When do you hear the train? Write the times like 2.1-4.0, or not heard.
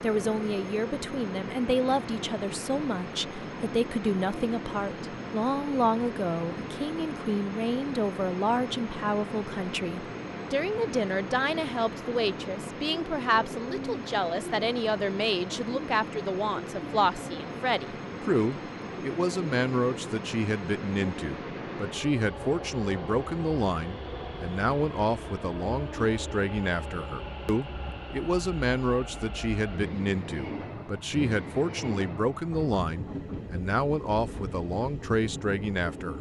0.0-36.1.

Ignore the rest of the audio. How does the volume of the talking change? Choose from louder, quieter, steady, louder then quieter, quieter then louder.
steady.